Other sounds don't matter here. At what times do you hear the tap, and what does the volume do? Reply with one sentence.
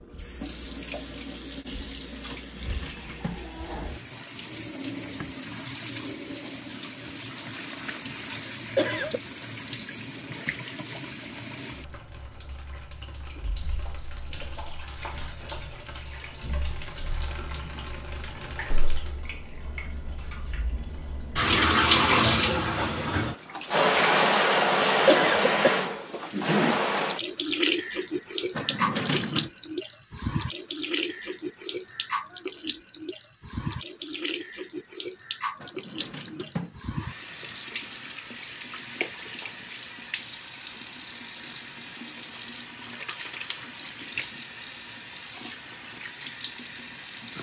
You can hear the tap from 0.0 to 47.3 s, getting louder then quieter.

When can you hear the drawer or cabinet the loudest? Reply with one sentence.
The volume of the drawer or cabinet peaks at 29 seconds.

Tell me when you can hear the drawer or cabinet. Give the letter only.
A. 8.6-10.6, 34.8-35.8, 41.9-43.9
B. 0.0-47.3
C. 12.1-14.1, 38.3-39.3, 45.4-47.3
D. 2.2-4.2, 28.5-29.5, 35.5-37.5
D.